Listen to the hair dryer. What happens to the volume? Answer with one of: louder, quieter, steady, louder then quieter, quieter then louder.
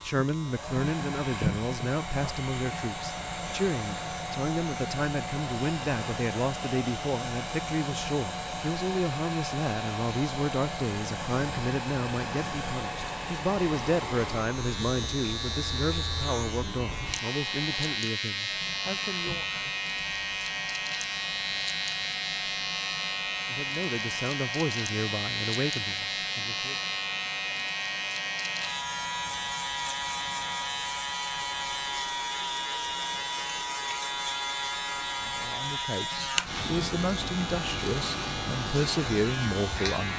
quieter.